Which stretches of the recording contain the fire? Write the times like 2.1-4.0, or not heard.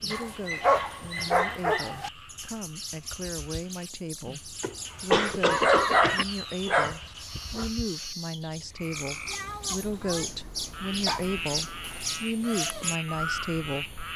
not heard.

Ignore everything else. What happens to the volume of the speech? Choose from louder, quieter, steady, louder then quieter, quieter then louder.
louder.